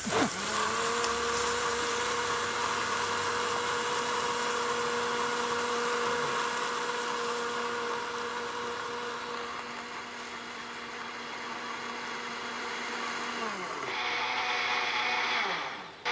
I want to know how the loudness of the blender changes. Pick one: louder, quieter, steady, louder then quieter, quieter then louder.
quieter then louder.